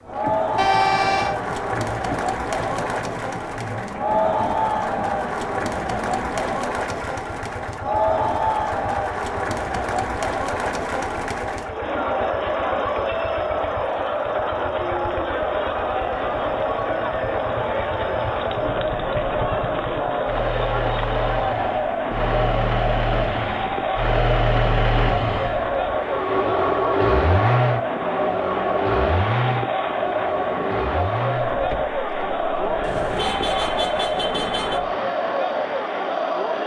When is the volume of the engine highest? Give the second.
27 s.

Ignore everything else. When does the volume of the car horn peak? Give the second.
1 s.